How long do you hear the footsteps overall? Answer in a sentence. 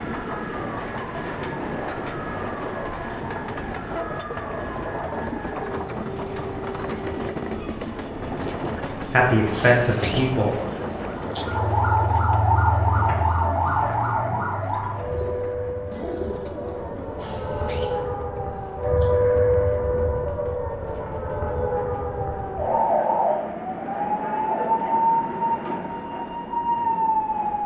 You can't hear the footsteps here.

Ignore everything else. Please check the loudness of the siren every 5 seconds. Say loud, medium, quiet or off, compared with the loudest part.
quiet, quiet, loud, loud, loud, loud.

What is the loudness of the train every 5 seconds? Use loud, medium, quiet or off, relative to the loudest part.
loud, loud, loud, quiet, quiet, quiet.